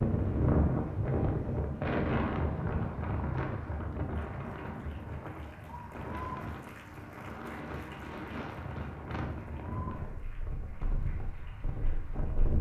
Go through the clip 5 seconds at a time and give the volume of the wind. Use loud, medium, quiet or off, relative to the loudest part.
loud, medium, medium.